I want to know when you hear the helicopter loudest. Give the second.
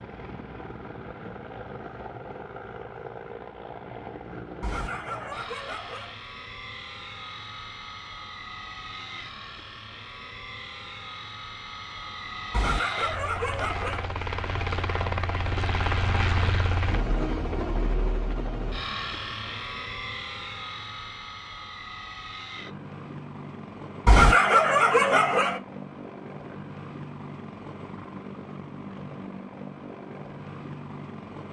16 s.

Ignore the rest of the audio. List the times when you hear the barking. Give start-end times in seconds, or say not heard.
4.6-6.2, 12.5-14.1, 24.1-25.6.